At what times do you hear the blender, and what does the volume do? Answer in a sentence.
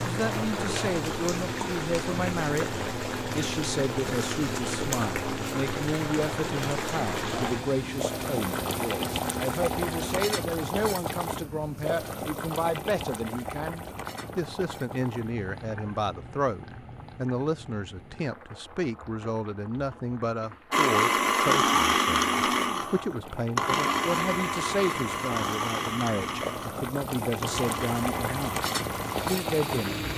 The blender can be heard from 0.0 to 10.2 s, at a steady volume; and from 20.7 to 30.1 s, getting quieter.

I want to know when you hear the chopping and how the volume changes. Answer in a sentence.
The chopping can't be heard in this clip.